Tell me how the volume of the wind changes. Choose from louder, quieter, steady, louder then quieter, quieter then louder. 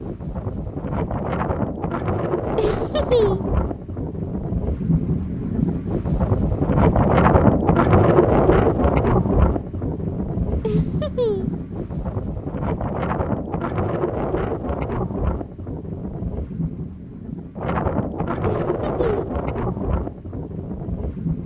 louder then quieter.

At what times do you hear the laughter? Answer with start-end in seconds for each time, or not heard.
2.5-3.4, 10.6-11.6, 18.4-19.4.